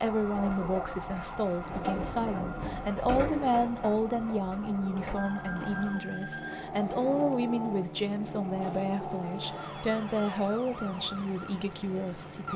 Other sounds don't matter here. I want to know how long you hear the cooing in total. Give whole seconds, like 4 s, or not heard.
5 s.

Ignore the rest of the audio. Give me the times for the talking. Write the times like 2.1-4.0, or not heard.
0.0-12.5.